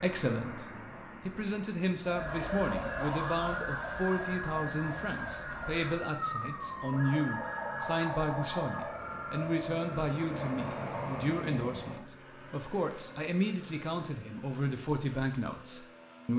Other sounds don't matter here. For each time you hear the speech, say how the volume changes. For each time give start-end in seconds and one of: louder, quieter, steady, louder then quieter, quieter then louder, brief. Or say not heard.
0.0-16.3 steady.